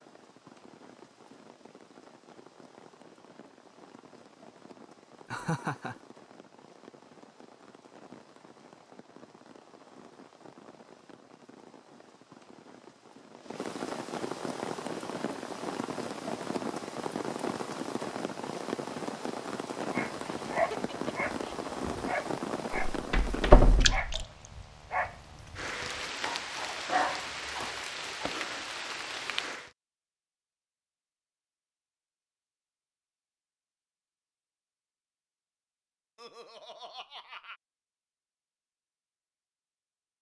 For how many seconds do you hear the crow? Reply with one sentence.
You can't hear the crow here.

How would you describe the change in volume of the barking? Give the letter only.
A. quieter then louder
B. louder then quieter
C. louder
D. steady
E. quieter
A.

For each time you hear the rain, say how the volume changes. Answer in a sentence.
You can hear the rain from 0.0 to 29.7 s, getting louder.